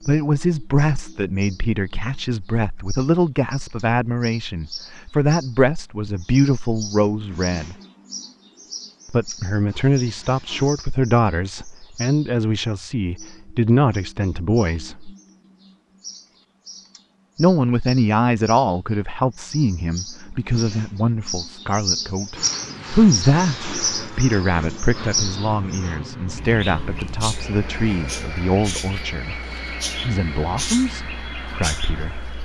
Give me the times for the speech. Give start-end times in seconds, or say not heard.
0.1-7.8, 9.1-15.1, 17.4-29.4, 30.1-32.3.